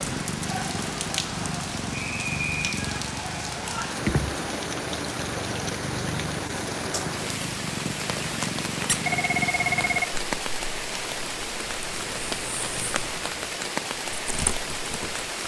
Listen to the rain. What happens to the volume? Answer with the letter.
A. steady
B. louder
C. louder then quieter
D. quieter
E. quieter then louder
A.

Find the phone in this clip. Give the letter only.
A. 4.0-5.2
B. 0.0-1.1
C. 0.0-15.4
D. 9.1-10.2
D.